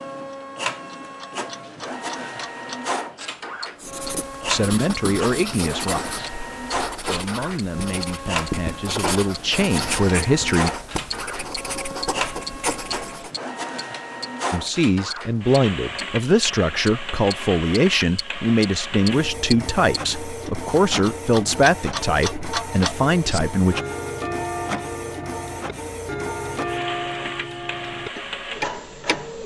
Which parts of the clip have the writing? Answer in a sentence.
You can hear the writing from 3.8 to 13.3 s.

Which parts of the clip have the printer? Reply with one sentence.
You can hear the printer from 0.0 to 29.4 s.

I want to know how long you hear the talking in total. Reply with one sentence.
The talking can be heard for 15 seconds in total.